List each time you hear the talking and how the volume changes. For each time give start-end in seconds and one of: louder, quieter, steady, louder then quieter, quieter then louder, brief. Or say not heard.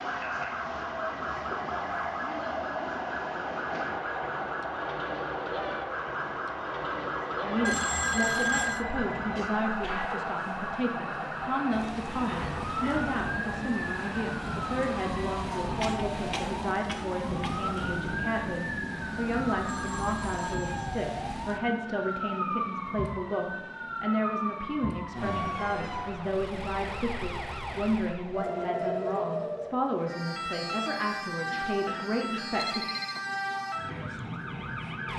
7.4-32.9 steady.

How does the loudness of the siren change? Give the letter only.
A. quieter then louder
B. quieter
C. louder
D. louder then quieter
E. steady
E.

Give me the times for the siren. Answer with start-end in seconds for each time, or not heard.
0.0-35.1.